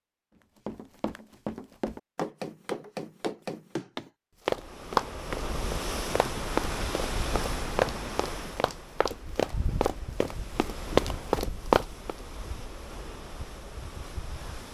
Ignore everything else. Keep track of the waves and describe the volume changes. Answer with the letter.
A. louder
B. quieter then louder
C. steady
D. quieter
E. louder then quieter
D.